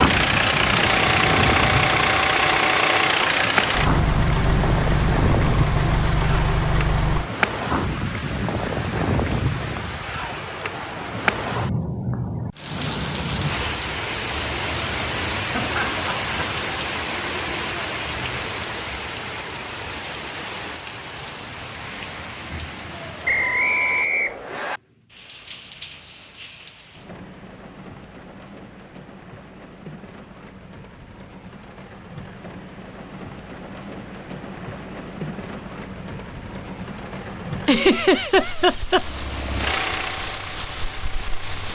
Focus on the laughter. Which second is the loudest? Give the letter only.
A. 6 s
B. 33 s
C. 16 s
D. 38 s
D.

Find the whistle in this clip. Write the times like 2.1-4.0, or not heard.
23.2-24.8.